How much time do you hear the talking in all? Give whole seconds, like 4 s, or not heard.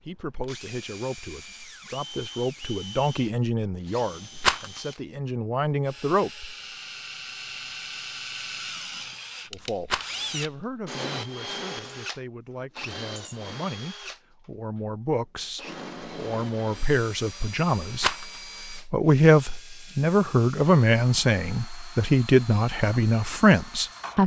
21 s.